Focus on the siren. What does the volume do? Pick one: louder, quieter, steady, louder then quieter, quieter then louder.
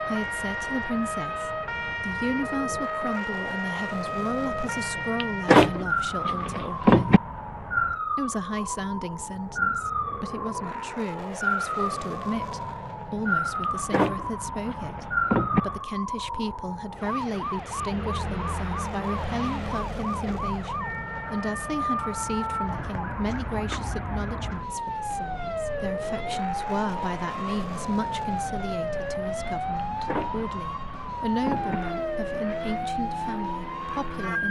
steady.